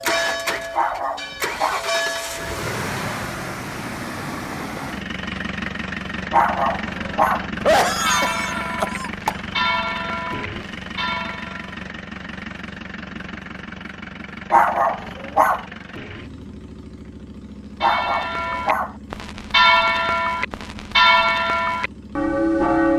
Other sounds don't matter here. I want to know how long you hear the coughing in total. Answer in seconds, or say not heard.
2 s.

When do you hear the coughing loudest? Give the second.
8 s.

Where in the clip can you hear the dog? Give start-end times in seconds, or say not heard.
0.7-1.9, 6.3-7.5, 14.5-15.7, 17.8-18.9.